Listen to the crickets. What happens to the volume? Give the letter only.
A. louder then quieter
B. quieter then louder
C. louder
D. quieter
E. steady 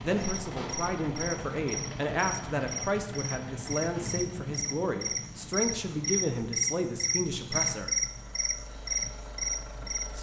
C.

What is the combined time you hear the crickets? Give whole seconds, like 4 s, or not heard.
10 s.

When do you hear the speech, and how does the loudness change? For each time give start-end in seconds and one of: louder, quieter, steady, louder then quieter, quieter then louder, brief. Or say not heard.
0.0-8.0 steady.